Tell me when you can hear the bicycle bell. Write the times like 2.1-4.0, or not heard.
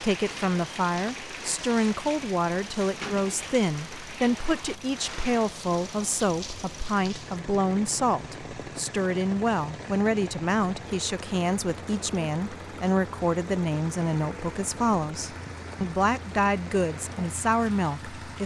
not heard.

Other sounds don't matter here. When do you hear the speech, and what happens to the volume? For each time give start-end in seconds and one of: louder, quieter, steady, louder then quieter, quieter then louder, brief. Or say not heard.
0.0-18.4 steady.